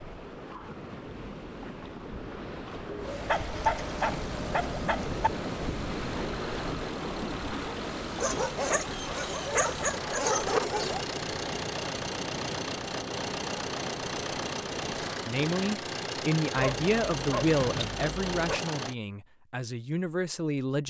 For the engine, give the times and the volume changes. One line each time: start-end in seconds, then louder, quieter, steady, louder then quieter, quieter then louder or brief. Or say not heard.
3.0-18.9 louder.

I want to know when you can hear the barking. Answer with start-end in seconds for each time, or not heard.
3.2-5.3, 8.2-11.1, 16.6-18.6.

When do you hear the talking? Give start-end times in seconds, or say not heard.
15.2-20.8.